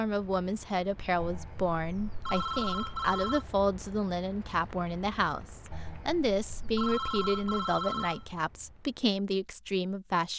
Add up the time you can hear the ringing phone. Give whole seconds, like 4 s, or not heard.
5 s.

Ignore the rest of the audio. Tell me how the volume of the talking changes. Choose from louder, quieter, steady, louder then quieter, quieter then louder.
steady.